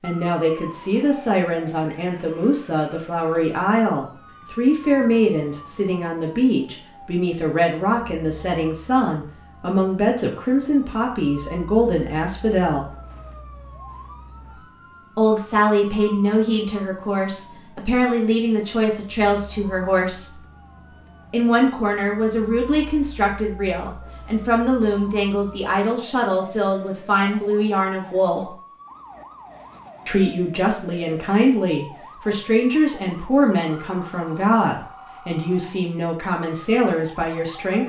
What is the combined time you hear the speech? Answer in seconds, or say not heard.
33 s.